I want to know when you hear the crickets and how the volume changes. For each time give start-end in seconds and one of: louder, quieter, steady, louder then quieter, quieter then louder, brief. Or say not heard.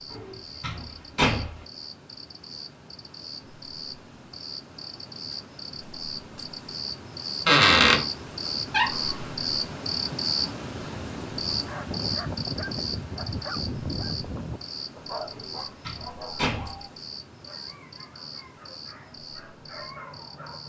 0.0-20.6 louder then quieter.